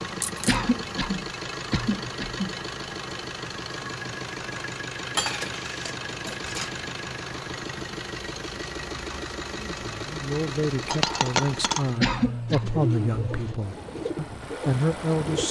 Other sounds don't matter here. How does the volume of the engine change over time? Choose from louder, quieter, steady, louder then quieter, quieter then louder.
steady.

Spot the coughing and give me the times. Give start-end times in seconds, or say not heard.
0.5-2.5, 12.0-12.7.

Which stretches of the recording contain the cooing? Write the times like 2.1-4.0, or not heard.
12.4-15.4.